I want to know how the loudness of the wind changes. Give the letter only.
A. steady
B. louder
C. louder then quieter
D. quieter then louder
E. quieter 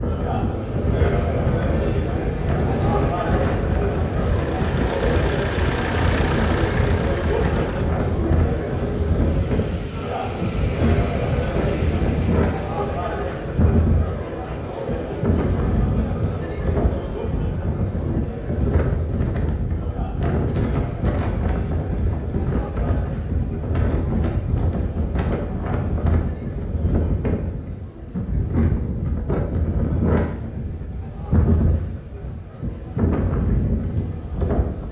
A.